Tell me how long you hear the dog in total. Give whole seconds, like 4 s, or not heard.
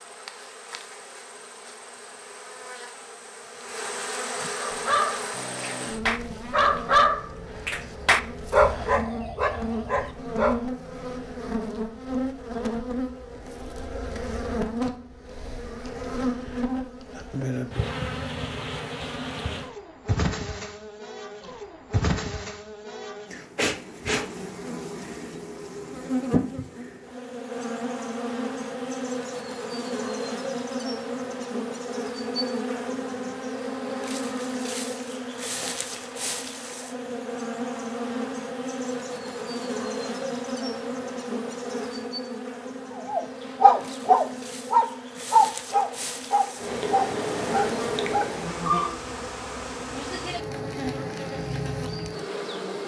12 s.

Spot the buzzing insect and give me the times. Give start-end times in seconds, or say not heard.
0.0-52.8.